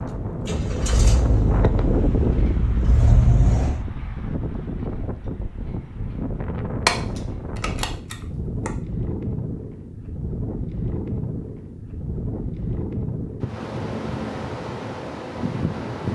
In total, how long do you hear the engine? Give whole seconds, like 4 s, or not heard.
4 s.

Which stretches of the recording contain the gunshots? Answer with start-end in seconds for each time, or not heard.
6.8-8.7.